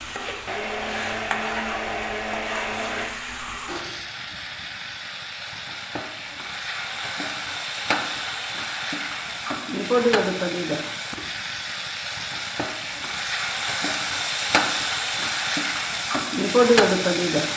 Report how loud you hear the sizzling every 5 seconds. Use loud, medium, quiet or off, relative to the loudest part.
quiet, medium, medium, loud.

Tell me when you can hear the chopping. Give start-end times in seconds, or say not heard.
not heard.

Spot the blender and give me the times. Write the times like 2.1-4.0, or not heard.
0.0-3.1.